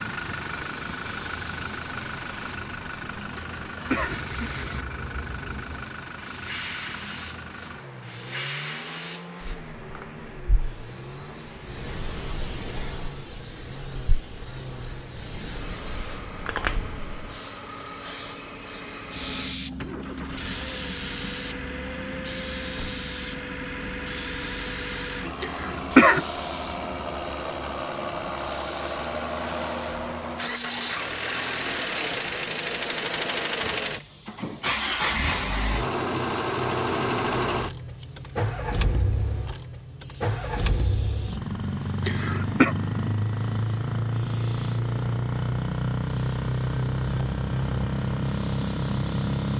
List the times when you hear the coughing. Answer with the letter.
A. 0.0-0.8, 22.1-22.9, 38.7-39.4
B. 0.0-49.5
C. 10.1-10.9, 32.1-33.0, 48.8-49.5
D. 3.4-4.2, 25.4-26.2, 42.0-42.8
D.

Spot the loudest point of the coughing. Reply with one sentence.
The loudest moment of the coughing is at 26 seconds.